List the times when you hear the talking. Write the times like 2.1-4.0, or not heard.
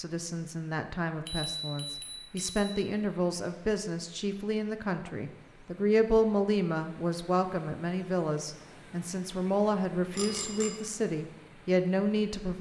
0.0-12.5.